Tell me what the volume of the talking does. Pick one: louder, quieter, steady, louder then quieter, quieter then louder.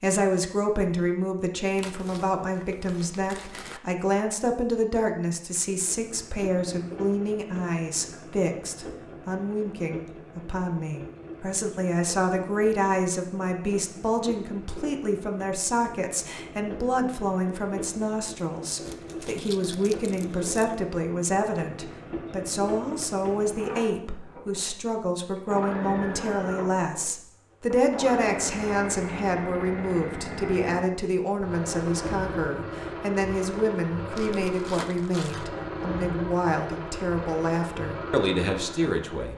steady.